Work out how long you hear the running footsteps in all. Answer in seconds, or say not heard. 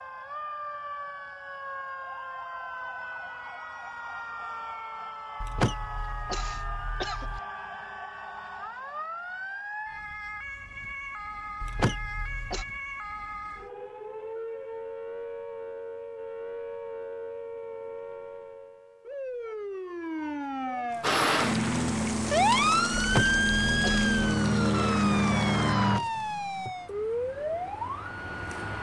not heard.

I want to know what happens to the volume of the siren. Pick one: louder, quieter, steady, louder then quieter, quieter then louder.
louder.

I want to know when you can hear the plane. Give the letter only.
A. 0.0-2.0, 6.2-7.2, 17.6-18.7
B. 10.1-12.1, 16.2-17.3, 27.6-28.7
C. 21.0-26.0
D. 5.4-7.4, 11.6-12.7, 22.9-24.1
C.